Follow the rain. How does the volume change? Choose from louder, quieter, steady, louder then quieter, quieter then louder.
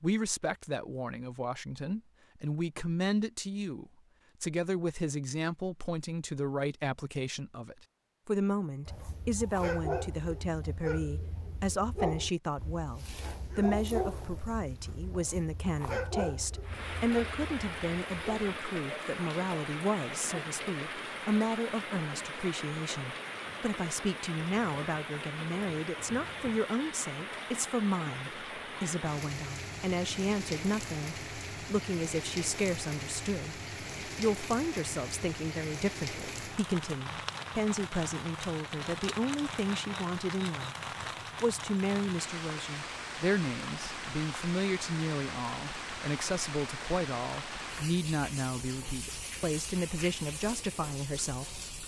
steady.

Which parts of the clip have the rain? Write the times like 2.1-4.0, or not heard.
16.6-51.8.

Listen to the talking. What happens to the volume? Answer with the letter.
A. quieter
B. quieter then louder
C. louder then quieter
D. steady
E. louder
D.